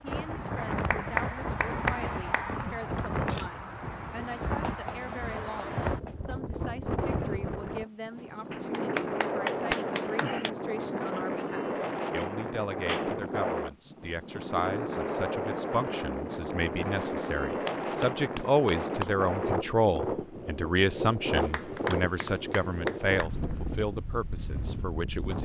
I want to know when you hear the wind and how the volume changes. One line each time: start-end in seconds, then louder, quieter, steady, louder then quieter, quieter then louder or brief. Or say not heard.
0.0-25.4 steady.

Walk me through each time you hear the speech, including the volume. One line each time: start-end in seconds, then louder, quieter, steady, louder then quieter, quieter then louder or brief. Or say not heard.
0.0-25.4 louder.